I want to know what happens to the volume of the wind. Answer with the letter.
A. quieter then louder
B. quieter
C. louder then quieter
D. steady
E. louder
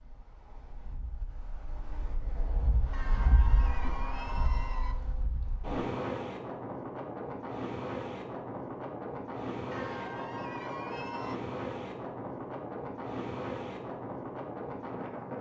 E.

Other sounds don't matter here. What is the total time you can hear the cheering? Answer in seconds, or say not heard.
4 s.